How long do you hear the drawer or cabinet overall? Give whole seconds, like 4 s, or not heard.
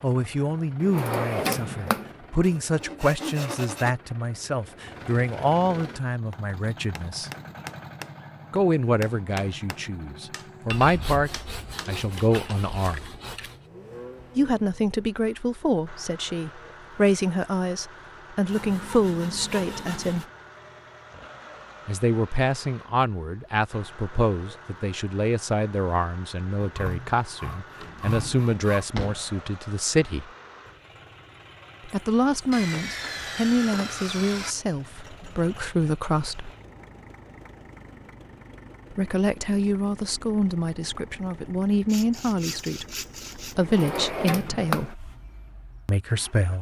4 s.